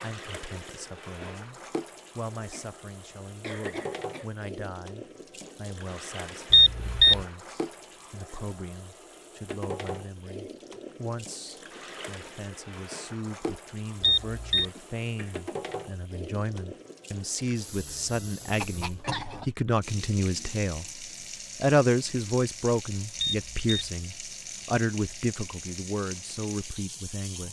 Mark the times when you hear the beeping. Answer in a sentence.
You can hear the beeping from 6.5 to 7.2 s, from 14.0 to 14.7 s and from 23.1 to 23.9 s.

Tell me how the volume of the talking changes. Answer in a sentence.
The volume of the talking goes up.